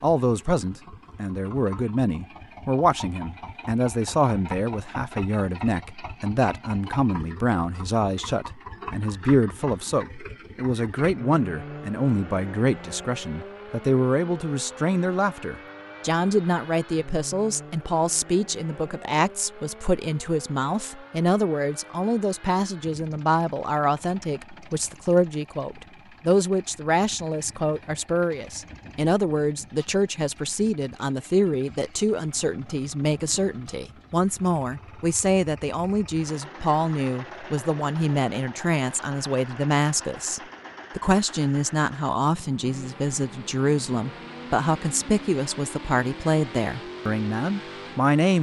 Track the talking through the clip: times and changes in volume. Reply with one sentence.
The talking can be heard from 0.0 to 48.3 s, at a steady volume.